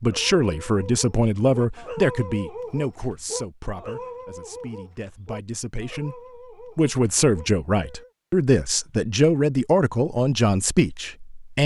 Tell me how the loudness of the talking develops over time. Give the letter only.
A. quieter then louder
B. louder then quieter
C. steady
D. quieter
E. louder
A.